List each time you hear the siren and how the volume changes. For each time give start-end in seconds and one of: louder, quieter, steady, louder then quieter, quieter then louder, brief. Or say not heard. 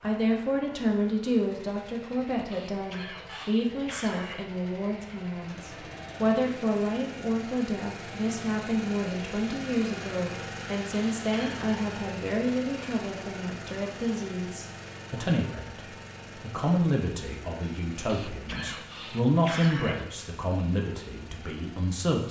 not heard.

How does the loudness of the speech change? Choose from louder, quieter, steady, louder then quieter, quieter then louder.
steady.